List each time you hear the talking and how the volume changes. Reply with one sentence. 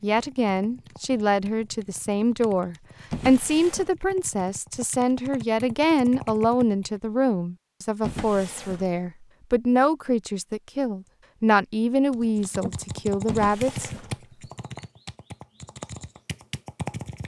The talking can be heard from 0.0 to 13.9 s, at a steady volume.